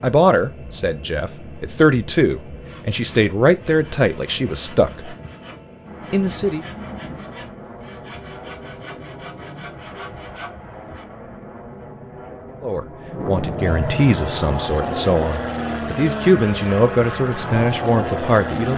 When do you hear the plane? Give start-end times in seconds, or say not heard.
0.1-18.7.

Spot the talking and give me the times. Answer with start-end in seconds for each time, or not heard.
0.0-5.2, 6.1-6.7, 12.6-18.7.